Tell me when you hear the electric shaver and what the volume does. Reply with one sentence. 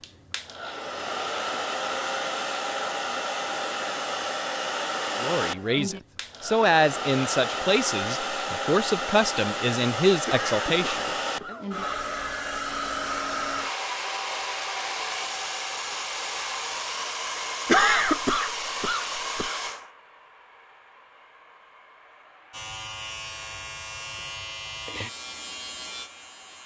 You can hear the electric shaver from 22.5 to 26.6 s, at a steady volume.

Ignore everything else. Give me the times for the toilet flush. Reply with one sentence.
The toilet flush can't be heard in this clip.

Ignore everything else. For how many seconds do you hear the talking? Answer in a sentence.
The talking can be heard for 6 seconds in total.